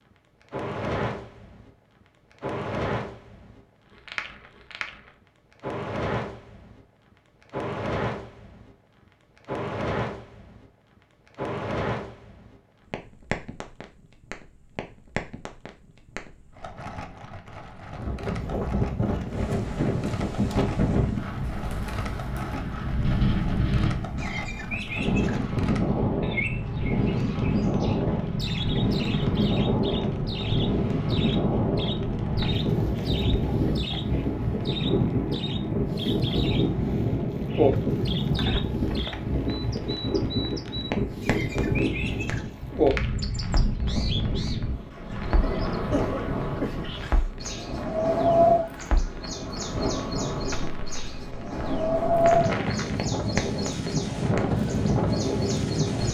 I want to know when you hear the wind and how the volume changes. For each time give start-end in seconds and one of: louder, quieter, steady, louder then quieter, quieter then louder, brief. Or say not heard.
17.9-56.0 steady.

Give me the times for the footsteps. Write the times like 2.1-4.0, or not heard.
not heard.